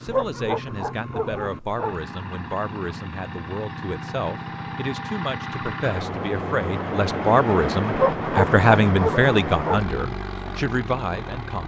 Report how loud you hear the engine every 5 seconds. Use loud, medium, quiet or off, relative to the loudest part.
medium, loud, medium.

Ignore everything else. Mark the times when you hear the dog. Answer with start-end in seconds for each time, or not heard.
0.1-1.9, 7.9-9.8.